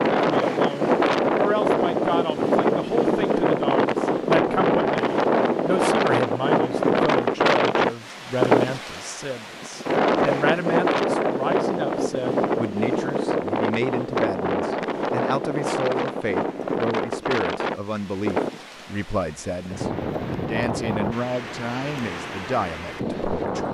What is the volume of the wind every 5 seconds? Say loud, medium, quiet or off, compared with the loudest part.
loud, loud, loud, medium, medium.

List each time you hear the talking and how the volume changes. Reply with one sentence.
The talking can be heard from 0.1 to 23.6 s, at a steady volume.